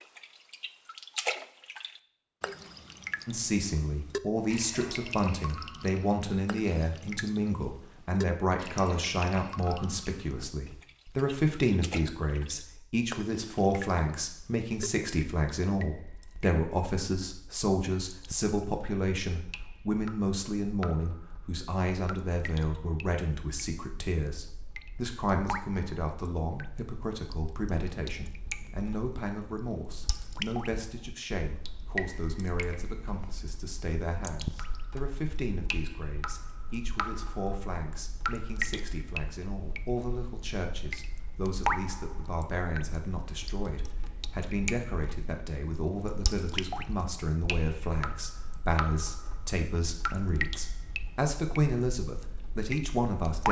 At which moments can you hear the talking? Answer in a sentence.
The talking can be heard from 3.2 to 53.4 s.